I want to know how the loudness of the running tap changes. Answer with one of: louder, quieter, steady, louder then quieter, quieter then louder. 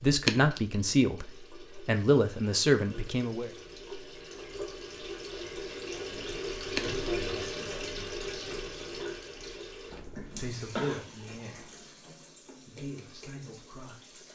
louder then quieter.